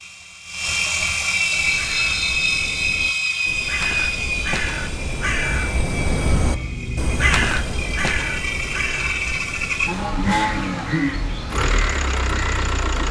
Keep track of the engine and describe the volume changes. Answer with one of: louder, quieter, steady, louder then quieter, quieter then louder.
quieter then louder.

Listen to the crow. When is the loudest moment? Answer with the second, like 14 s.
7 s.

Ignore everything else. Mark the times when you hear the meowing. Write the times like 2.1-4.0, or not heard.
6.2-7.7.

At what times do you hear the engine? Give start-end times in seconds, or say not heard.
0.0-13.0.